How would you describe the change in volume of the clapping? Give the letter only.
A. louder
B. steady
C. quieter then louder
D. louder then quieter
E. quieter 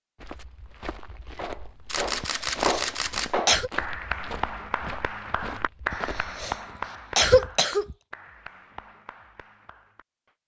E.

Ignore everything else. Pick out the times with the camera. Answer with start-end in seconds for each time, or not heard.
1.4-3.5.